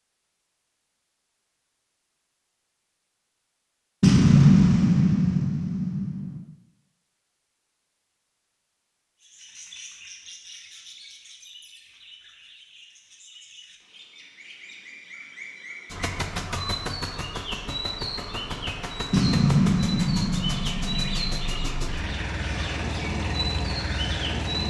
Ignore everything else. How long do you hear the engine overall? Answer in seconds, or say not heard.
9 s.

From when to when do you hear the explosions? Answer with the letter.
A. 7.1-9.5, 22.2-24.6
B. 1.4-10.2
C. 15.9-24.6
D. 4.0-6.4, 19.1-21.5
D.